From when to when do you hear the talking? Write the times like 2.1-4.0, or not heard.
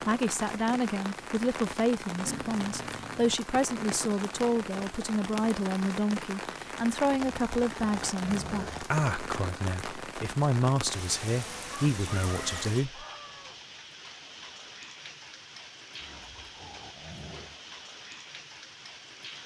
0.1-13.1.